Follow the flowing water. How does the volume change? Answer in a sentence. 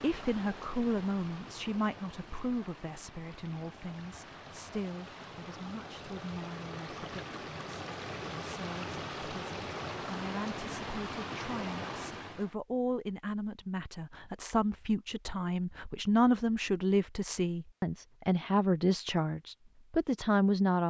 The volume of the flowing water goes up.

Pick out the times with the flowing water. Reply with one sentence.
The flowing water can be heard from 0.0 to 12.6 s.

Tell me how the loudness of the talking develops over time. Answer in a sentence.
The volume of the talking goes down, then up.